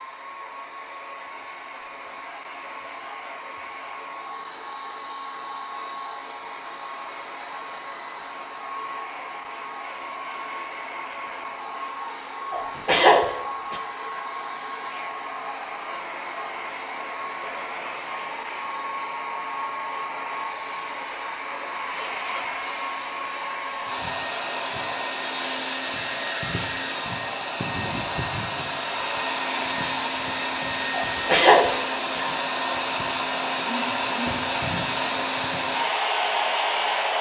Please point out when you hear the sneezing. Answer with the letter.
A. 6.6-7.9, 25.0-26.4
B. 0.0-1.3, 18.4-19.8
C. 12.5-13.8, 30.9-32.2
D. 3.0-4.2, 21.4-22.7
C.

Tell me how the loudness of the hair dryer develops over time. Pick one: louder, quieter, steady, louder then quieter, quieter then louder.
louder.